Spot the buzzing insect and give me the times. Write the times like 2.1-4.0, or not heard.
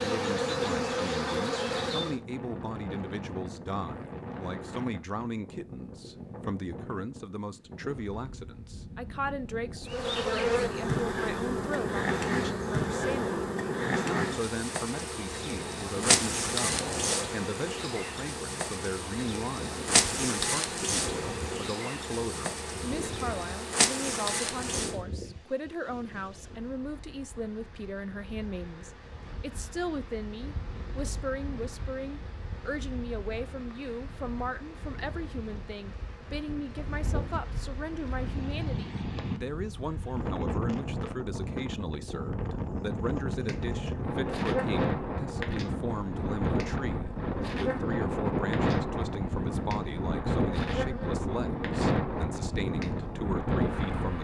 0.0-2.1, 9.8-25.0, 43.4-54.1.